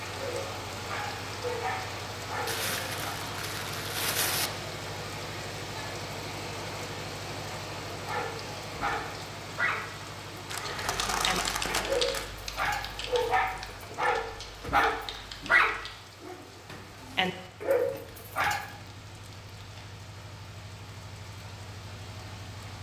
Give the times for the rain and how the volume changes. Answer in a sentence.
You can hear the rain from 0.0 to 22.7 s, getting quieter.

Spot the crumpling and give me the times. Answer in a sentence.
You can hear the crumpling from 2.5 to 4.5 s, from 10.4 to 12.3 s and from 18.6 to 19.9 s.